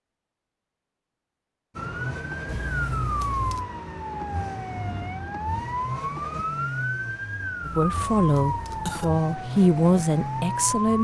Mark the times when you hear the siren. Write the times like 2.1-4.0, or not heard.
1.8-10.9.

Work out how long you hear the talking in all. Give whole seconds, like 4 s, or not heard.
3 s.